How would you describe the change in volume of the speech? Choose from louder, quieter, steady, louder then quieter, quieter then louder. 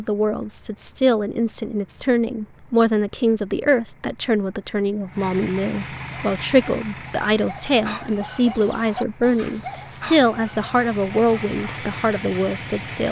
steady.